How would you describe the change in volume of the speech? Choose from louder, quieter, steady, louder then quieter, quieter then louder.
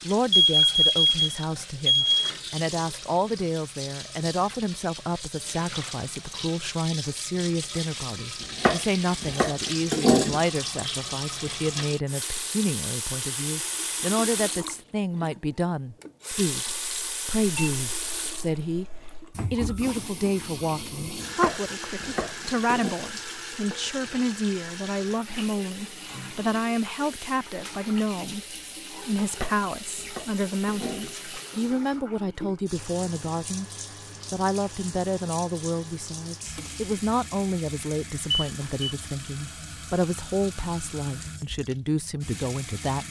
steady.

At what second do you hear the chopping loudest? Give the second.
10 s.